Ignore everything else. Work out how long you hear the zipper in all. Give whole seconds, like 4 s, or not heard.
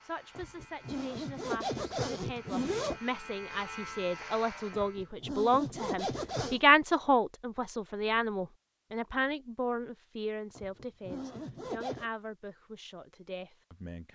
6 s.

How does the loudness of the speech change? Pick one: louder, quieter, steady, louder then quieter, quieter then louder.
louder then quieter.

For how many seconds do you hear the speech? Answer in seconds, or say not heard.
14 s.